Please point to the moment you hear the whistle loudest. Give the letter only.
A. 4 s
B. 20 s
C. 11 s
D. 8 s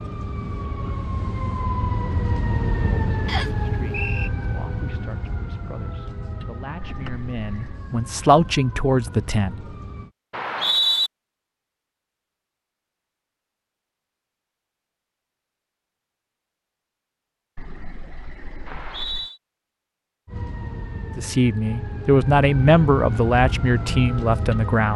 C.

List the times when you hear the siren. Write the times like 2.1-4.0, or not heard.
0.0-10.1, 20.2-24.9.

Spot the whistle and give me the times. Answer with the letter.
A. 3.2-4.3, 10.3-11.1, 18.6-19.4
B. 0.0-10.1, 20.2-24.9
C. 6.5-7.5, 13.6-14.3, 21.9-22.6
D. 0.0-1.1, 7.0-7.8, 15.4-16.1
A.